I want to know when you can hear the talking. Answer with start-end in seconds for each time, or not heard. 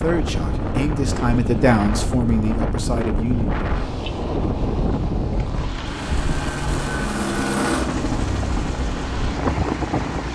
0.0-3.5.